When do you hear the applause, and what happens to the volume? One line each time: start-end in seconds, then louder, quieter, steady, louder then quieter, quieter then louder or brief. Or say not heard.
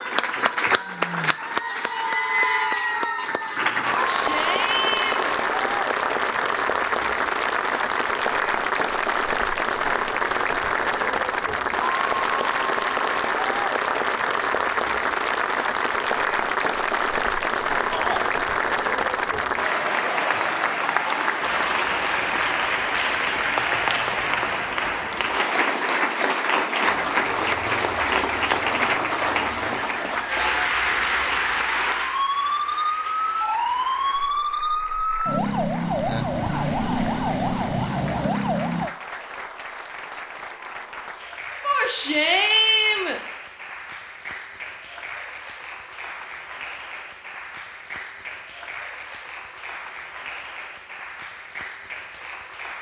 0.0-52.7 quieter.